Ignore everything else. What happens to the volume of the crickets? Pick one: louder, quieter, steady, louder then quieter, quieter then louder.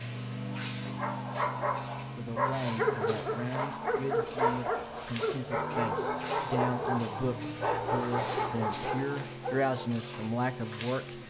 steady.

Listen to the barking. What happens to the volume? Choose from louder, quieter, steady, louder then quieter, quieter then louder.
steady.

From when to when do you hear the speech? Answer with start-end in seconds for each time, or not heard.
2.1-11.2.